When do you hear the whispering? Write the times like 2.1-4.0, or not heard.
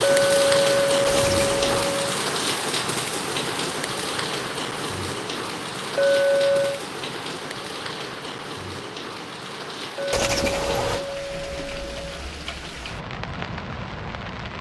not heard.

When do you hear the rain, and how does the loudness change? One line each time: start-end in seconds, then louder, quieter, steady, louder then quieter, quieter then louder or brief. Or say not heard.
0.0-14.5 quieter.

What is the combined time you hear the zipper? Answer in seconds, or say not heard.
2 s.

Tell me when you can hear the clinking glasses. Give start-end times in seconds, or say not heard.
0.0-2.1, 6.0-6.8, 9.9-12.2.